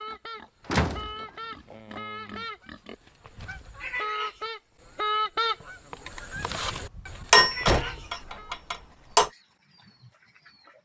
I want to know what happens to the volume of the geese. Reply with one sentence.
The loudness of the geese goes up, then down.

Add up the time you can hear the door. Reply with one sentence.
You can hear the door for 3 seconds altogether.